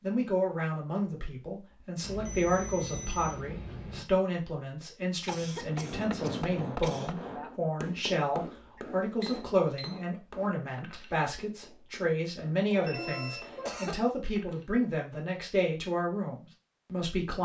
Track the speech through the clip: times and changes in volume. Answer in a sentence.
You can hear the speech from 0.0 to 17.4 s, at a steady volume.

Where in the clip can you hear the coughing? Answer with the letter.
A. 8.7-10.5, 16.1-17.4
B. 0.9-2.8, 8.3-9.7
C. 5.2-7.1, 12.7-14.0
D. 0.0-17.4
C.